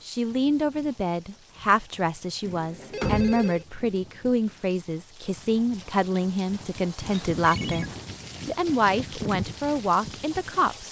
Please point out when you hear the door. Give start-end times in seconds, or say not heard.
3.0-3.5.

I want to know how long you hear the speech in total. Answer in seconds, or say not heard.
10 s.